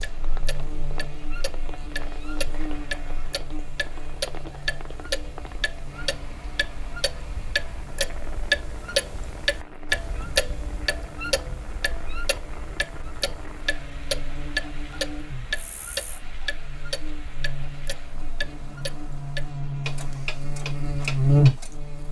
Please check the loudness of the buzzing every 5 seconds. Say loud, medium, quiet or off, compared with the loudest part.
quiet, quiet, quiet, quiet, loud.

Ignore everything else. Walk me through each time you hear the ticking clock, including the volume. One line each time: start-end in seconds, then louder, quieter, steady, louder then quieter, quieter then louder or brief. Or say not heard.
0.0-21.8 louder then quieter.